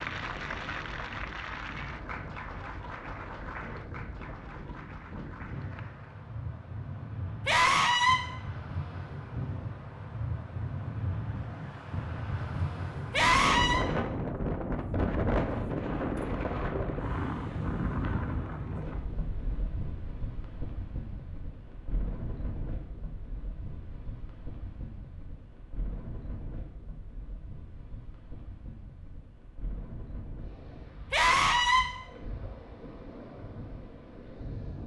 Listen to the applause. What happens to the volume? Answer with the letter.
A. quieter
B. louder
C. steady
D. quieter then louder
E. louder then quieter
A.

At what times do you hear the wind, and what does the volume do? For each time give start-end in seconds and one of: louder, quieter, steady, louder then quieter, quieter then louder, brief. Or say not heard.
0.0-34.8 louder then quieter.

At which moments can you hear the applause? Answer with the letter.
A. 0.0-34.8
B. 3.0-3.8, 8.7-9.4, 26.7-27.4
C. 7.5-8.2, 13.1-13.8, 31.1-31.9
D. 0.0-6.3
D.